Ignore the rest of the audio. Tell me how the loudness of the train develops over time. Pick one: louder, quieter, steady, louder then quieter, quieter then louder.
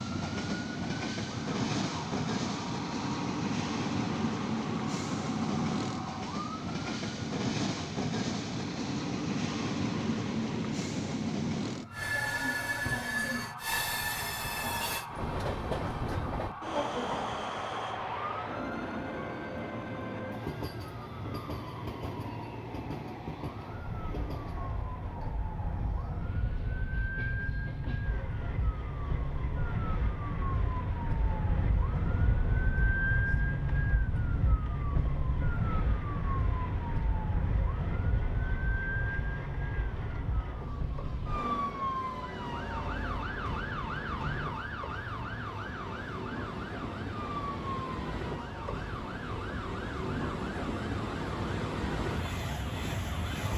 quieter then louder.